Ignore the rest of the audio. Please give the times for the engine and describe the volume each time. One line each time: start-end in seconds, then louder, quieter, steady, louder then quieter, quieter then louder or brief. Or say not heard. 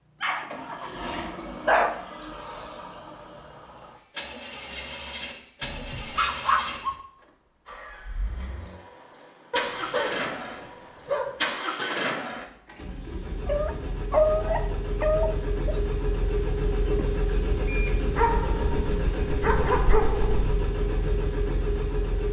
0.1-22.2 louder.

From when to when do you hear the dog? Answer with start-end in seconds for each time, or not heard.
0.2-1.9, 5.6-7.0, 9.5-11.4, 13.4-15.8, 18.1-20.6.